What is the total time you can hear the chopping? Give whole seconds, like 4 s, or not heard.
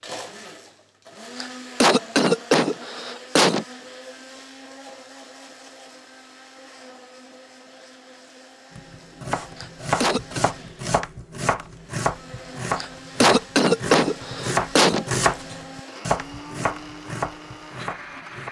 10 s.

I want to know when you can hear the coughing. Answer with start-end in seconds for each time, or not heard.
1.4-3.6, 9.6-10.4, 12.8-15.1.